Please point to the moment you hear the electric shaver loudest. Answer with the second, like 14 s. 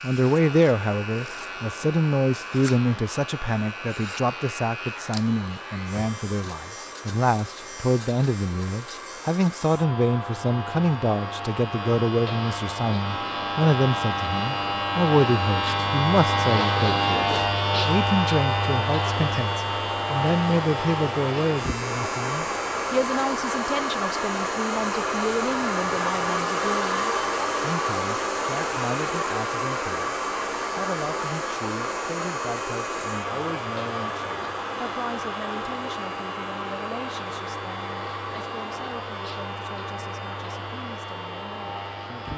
17 s.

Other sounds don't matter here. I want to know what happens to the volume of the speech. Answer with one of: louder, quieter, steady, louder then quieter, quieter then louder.
quieter.